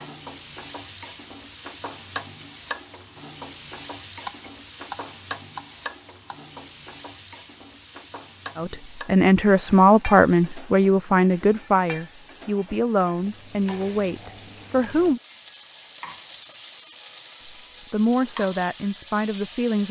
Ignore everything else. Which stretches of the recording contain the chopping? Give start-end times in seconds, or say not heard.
4.2-6.4.